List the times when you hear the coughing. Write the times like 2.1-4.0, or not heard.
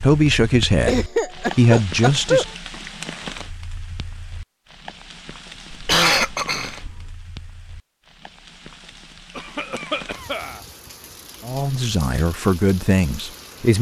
0.8-2.5, 5.7-7.0, 9.3-10.6.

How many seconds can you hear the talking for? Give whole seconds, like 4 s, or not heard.
5 s.